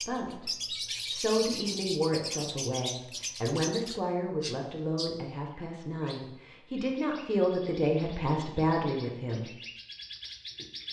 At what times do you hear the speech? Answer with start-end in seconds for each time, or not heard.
0.0-0.5, 1.1-9.5.